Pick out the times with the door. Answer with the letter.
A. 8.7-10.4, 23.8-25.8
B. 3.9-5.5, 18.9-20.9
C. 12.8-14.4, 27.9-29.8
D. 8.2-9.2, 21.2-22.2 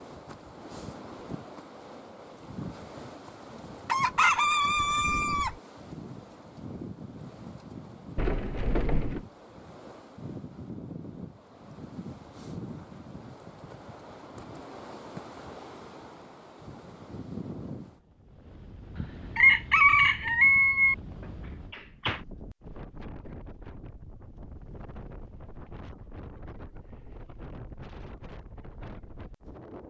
D.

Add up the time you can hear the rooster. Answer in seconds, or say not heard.
4 s.